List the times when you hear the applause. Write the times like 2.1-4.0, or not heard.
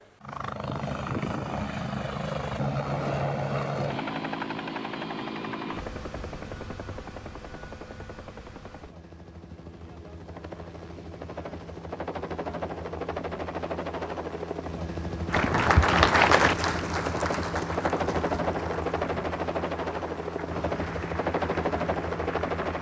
15.2-22.7.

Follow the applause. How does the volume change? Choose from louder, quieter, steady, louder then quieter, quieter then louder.
quieter.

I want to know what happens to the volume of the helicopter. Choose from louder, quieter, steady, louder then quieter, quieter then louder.
quieter then louder.